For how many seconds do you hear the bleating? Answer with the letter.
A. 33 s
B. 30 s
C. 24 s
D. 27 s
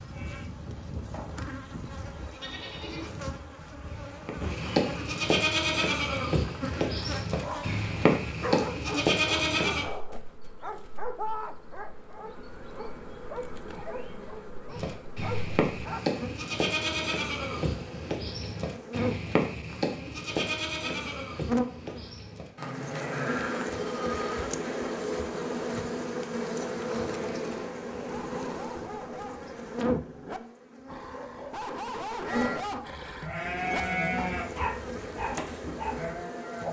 C.